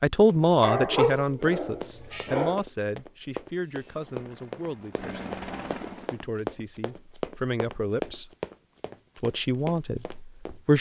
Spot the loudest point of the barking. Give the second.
1 s.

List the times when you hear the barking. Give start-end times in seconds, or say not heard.
0.6-2.6.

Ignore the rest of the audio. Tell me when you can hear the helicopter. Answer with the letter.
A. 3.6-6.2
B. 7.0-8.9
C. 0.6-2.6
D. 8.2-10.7
A.